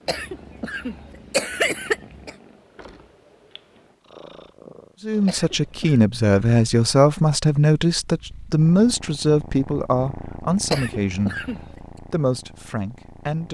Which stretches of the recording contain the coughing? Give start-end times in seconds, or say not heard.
0.1-2.4, 5.2-6.0, 10.7-11.8.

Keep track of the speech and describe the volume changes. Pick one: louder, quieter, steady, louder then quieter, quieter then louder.
quieter.